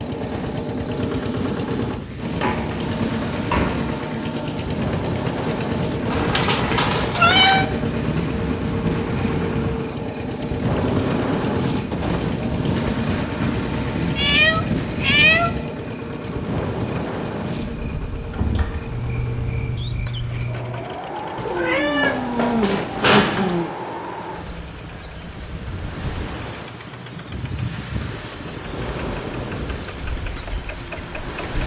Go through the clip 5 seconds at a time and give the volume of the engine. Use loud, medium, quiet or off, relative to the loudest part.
loud, loud, loud, medium, quiet, quiet, medium.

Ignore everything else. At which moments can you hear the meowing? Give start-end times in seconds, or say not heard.
6.1-7.7, 14.2-15.7, 21.4-23.7.